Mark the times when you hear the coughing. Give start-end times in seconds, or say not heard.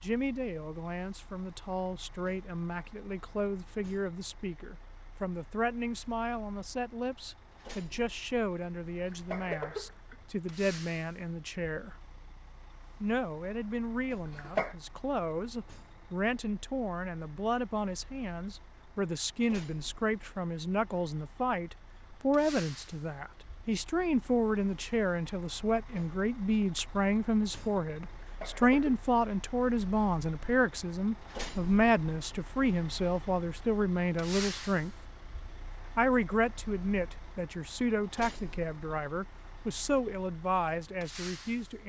8.9-10.2, 14.2-14.8, 28.2-29.0.